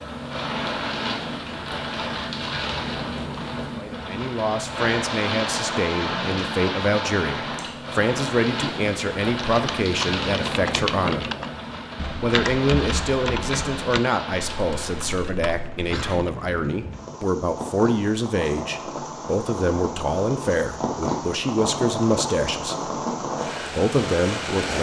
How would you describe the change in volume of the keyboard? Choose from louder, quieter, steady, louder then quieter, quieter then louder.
quieter.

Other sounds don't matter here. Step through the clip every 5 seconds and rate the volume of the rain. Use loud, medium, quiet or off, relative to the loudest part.
loud, loud, loud, medium, loud.